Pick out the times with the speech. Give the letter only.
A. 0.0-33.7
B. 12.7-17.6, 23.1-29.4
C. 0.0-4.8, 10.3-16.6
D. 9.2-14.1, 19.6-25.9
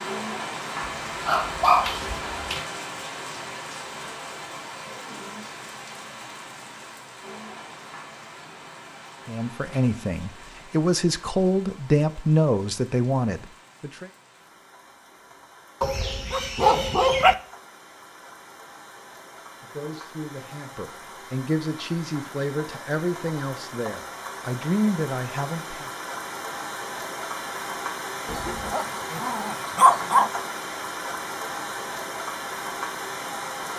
D.